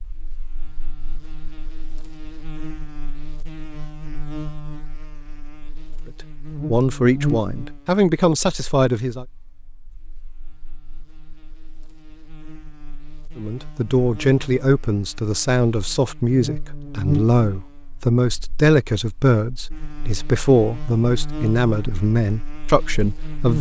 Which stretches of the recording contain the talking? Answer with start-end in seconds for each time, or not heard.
6.7-9.2, 13.3-23.5.